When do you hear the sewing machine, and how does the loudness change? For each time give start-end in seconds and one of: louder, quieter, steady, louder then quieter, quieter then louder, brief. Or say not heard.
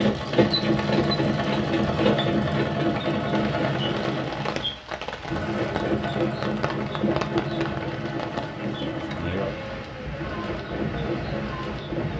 0.0-12.1 quieter.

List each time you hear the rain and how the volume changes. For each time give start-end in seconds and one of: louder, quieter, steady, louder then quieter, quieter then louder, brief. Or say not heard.
3.5-12.1 steady.